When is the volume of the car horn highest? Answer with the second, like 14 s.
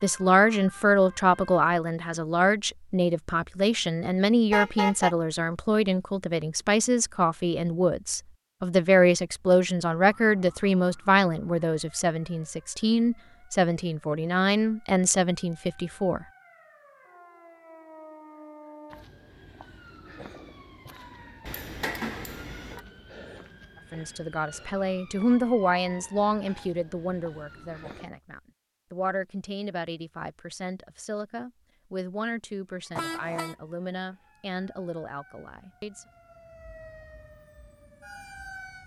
5 s.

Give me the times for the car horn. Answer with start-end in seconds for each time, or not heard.
4.5-5.2, 21.4-22.8, 33.0-33.5.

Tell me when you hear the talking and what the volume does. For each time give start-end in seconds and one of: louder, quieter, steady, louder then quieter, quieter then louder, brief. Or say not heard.
0.0-16.2 steady
23.9-36.0 quieter.